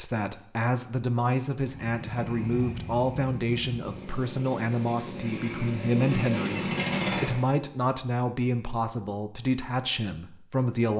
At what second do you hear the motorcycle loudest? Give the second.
7 s.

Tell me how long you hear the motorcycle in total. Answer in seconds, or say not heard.
6 s.